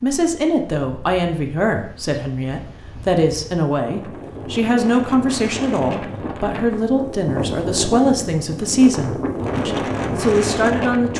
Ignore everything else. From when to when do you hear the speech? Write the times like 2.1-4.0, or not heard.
0.0-11.1.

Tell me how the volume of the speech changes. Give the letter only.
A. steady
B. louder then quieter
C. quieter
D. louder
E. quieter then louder
A.